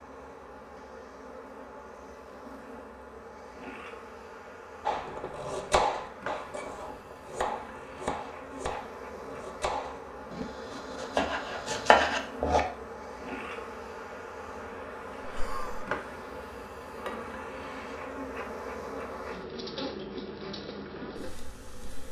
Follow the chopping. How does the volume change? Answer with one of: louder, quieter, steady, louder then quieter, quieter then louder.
quieter then louder.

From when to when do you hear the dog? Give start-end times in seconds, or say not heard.
not heard.